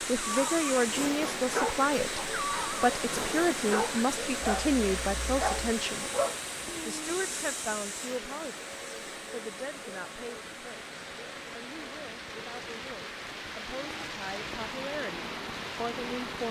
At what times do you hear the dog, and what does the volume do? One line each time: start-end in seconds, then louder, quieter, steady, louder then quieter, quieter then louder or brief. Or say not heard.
0.1-6.3 steady.